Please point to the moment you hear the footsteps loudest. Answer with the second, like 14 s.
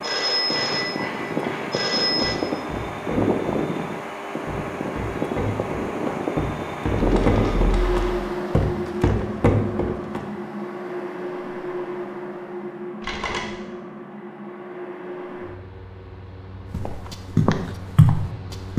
18 s.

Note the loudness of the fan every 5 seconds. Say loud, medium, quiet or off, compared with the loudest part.
loud, loud, medium, quiet.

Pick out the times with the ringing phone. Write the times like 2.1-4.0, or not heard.
0.0-2.4, 7.0-8.1, 13.0-13.5.